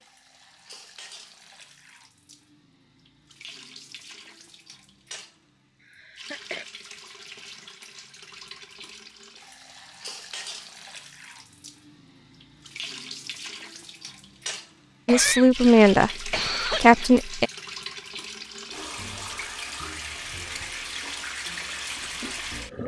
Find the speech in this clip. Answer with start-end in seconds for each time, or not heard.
15.1-17.5.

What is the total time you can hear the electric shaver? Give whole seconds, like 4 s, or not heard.
not heard.